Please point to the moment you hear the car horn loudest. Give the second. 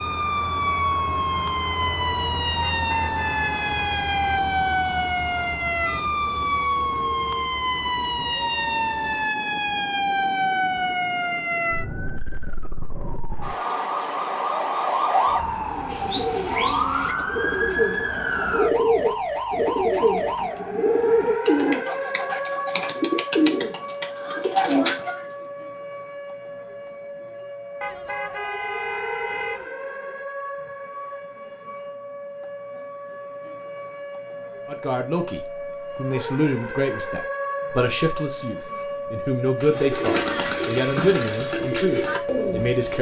29 s.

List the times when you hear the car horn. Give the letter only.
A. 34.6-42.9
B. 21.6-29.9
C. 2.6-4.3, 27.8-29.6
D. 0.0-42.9
C.